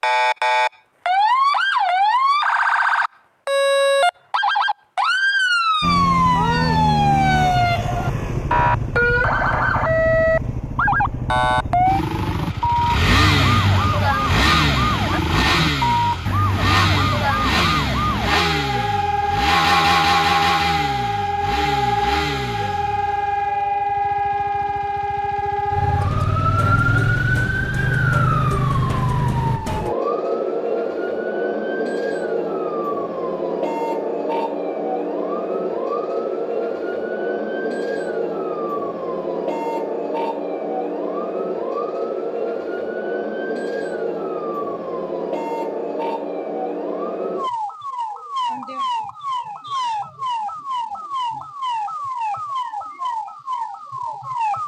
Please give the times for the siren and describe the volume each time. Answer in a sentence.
You can hear the siren from 0.0 to 54.6 s, getting quieter.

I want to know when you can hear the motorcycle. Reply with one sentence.
The motorcycle can be heard from 5.8 to 29.6 s.